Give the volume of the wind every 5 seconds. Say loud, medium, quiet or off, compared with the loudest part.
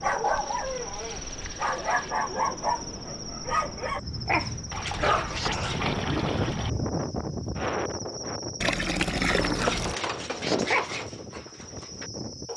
medium, loud, medium.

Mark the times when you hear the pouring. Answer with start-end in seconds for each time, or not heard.
0.2-2.1, 4.7-6.7, 8.6-9.9.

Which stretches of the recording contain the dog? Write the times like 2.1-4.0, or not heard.
0.0-5.8, 9.6-12.5.